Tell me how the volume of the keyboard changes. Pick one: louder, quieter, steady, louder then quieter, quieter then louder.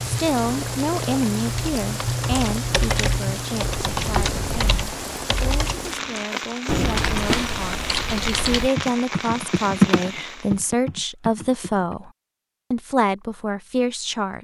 louder.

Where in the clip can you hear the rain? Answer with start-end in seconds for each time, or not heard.
0.0-10.6.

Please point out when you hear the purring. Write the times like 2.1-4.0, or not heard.
0.0-5.0.